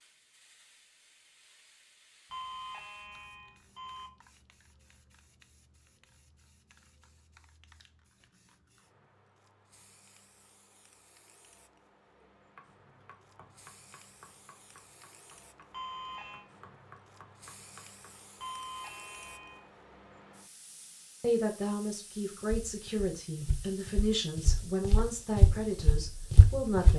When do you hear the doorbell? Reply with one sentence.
You can hear the doorbell from 2.3 to 4.1 s, from 15.7 to 16.4 s and from 18.4 to 19.6 s.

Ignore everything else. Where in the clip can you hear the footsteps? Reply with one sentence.
The footsteps can be heard from 22.4 to 26.9 s.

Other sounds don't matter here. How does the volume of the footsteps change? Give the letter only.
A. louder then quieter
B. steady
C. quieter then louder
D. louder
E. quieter
C.